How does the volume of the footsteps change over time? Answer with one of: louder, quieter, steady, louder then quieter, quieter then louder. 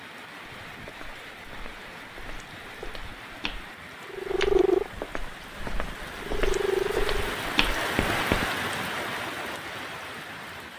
louder.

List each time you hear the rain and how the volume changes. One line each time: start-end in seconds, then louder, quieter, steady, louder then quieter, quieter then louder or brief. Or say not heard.
0.0-10.7 louder.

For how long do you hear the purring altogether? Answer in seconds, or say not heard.
3 s.